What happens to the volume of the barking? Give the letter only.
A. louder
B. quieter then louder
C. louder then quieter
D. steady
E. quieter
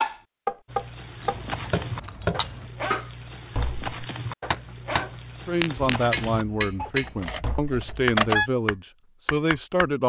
D.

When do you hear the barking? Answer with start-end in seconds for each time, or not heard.
0.7-6.9.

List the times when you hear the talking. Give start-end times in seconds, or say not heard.
5.5-10.0.